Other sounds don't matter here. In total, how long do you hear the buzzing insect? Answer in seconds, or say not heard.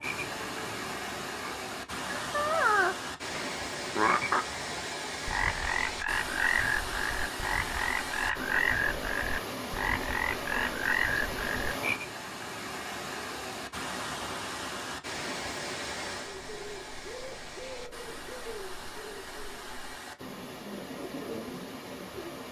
not heard.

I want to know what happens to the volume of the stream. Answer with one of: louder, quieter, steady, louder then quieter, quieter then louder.
quieter.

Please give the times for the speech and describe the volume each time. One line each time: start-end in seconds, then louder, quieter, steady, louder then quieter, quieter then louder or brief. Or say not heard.
not heard.